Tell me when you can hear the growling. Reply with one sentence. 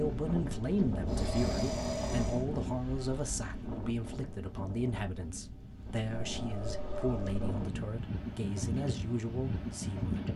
You can hear the growling from 1.1 to 2.5 s and from 6.1 to 7.5 s.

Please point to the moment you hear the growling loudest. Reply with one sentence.
The volume of the growling peaks at 2 seconds.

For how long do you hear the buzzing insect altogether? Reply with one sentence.
You can't hear the buzzing insect here.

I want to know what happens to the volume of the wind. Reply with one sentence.
The loudness of the wind goes down, then up.